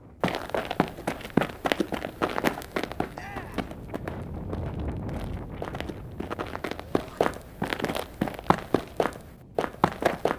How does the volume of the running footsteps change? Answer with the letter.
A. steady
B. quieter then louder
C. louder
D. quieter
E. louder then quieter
B.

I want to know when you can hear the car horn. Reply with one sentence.
You can't hear the car horn here.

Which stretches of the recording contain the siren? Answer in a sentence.
The siren can't be heard in this clip.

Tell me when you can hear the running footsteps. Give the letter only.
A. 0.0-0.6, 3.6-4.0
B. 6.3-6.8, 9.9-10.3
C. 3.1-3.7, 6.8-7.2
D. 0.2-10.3
D.